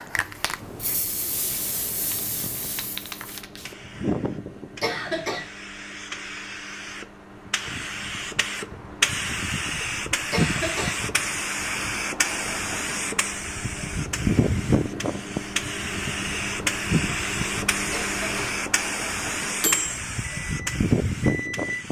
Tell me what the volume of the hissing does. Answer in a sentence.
The volume of the hissing goes up.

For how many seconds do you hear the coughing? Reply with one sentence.
The coughing can be heard for 2 seconds in total.